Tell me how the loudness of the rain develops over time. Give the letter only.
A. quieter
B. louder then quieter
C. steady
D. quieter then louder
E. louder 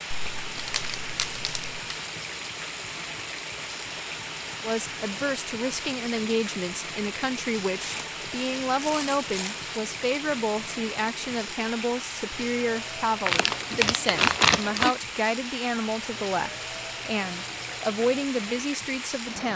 C.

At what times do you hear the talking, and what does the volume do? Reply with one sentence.
The talking can be heard from 4.6 to 19.5 s, at a steady volume.